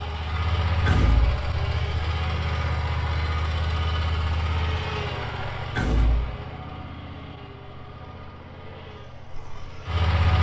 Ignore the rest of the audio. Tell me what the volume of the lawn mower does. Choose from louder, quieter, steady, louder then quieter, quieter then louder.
quieter.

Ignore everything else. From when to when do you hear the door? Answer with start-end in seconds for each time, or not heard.
0.8-1.4, 5.8-6.3.